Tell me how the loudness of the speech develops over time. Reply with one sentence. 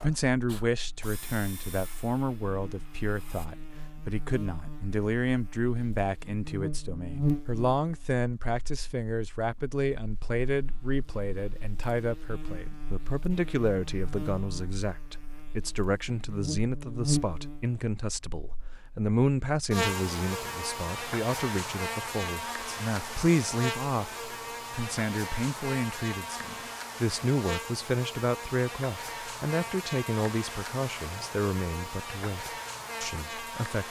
The loudness of the speech stays about the same.